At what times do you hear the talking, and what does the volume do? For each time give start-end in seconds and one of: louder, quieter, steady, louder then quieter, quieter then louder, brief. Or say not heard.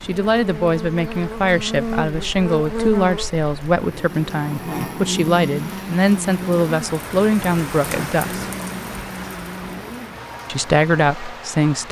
0.0-8.4 steady
10.4-11.8 brief.